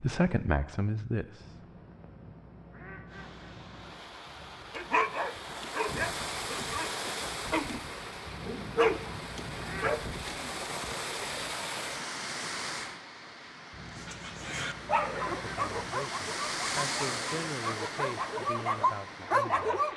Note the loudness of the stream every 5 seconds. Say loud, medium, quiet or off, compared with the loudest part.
medium, loud, loud, loud.